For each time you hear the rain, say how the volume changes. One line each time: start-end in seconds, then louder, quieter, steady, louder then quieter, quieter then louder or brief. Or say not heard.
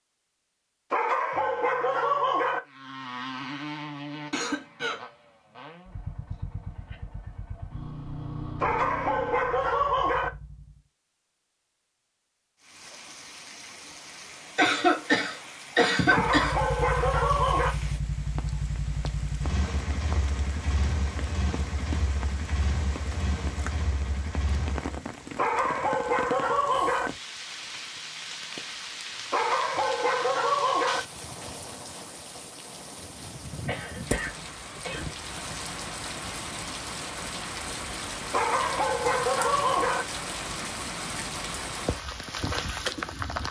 12.6-43.4 louder.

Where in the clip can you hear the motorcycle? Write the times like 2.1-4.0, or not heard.
2.6-10.8, 16.3-25.1.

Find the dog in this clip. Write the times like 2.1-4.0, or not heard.
0.9-2.6, 8.6-10.3, 16.1-17.8, 25.4-27.1, 29.3-31.0, 38.3-40.0.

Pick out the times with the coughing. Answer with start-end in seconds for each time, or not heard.
4.1-5.0, 14.6-16.6, 33.6-35.5.